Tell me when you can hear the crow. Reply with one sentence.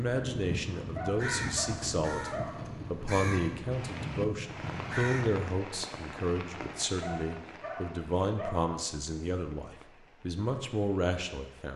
The crow can be heard from 0.3 to 5.5 s.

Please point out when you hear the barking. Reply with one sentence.
You can hear the barking from 0.9 to 2.6 s and from 7.0 to 8.8 s.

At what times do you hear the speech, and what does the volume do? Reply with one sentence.
You can hear the speech from 0.0 to 11.7 s, at a steady volume.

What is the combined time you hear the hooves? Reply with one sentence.
You can't hear the hooves here.